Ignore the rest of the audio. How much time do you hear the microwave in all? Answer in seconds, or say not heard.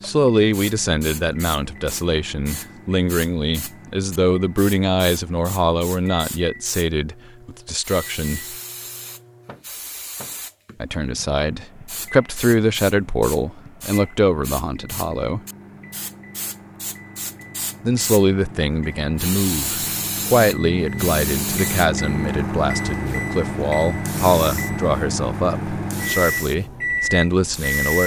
28 s.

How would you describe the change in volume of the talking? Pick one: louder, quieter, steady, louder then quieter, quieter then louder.
steady.